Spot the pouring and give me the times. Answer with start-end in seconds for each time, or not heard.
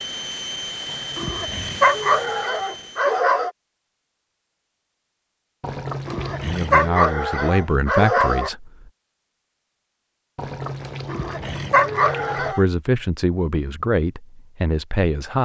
0.8-2.5, 5.6-6.9, 10.3-12.6.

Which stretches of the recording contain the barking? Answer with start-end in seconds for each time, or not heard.
1.1-3.5, 6.0-8.5, 11.1-12.7.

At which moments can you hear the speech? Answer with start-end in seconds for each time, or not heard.
6.4-8.9, 12.3-15.4.